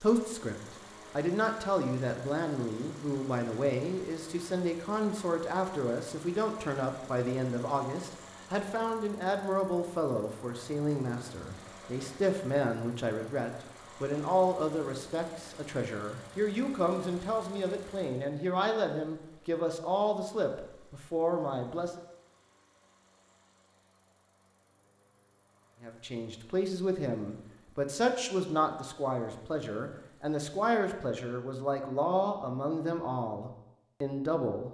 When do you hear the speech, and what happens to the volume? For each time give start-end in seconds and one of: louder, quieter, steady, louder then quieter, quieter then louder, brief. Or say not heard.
0.0-22.0 steady
25.8-34.6 steady.